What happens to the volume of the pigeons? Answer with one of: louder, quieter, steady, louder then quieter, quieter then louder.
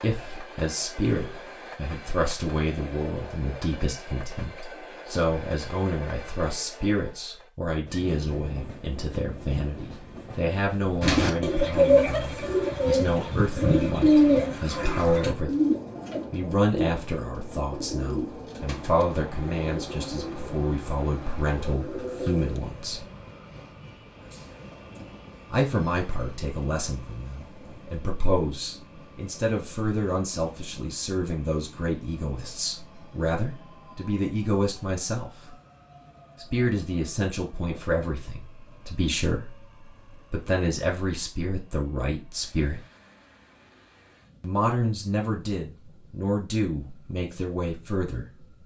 quieter.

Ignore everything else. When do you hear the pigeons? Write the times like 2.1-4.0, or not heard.
11.0-22.6.